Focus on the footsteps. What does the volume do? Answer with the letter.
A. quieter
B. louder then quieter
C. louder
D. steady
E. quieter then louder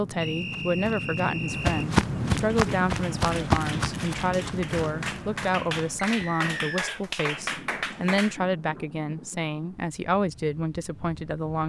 B.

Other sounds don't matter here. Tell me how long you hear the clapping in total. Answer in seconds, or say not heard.
6 s.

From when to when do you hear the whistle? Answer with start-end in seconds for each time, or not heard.
0.2-1.9, 6.0-7.0.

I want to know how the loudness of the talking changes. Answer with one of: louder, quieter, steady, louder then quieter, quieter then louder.
steady.